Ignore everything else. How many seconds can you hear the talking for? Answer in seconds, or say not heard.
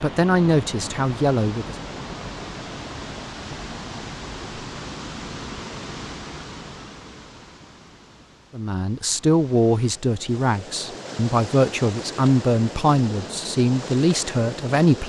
8 s.